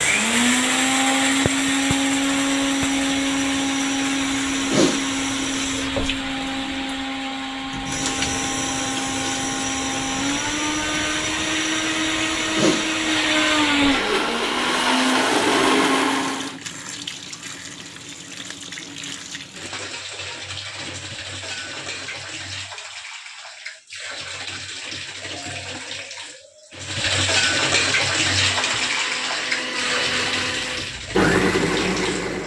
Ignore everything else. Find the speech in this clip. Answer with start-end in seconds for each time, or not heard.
not heard.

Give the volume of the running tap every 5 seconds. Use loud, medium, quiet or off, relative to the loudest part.
medium, medium, medium, medium, medium, loud, medium.